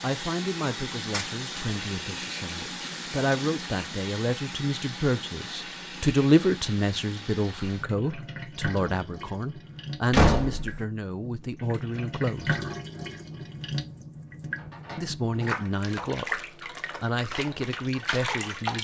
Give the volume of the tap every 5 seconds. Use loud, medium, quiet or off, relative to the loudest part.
loud, medium, loud, loud.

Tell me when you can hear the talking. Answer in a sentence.
You can hear the talking from 0.0 to 12.6 s and from 14.9 to 18.7 s.